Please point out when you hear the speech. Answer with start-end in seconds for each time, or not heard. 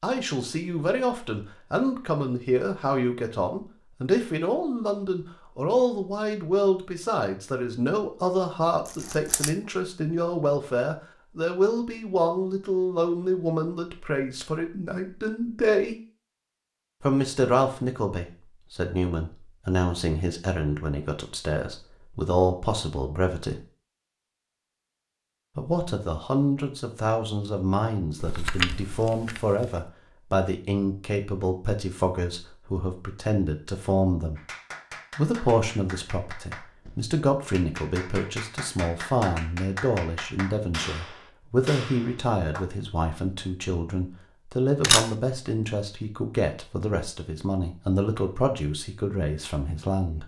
0.0-15.9, 17.0-23.6, 25.6-34.4, 35.1-50.2.